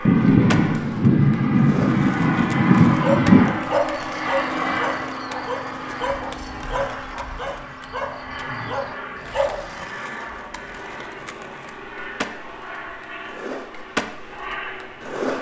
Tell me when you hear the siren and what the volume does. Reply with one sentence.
You can't hear the siren here.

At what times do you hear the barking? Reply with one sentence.
The barking can be heard from 2.6 to 9.8 s.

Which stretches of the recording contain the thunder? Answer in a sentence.
You can hear the thunder from 0.1 to 3.6 s.